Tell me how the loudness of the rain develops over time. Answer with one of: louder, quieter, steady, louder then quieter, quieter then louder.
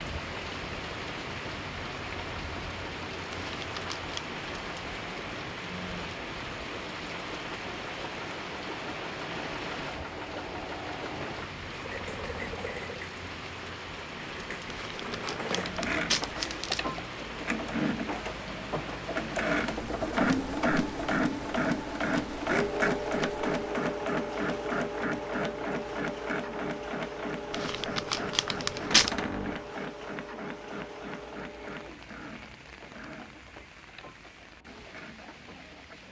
quieter.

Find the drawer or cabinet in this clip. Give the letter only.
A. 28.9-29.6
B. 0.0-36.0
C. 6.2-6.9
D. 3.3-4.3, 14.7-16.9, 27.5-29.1
A.